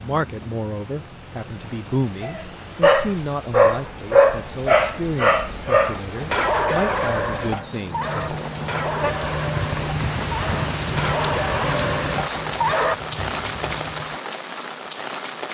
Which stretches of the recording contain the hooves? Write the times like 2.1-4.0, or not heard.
7.8-14.2.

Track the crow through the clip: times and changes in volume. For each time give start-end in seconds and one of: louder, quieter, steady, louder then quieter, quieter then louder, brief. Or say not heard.
not heard.